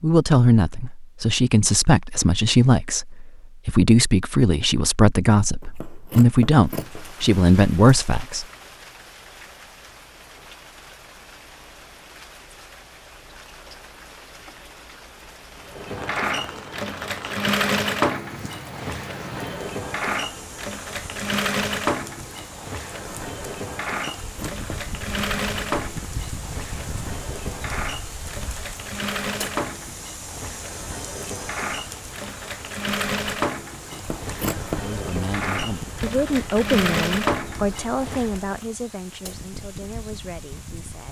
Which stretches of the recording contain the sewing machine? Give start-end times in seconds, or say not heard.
15.7-38.6.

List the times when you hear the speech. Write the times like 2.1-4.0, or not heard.
0.0-8.4, 34.8-41.0.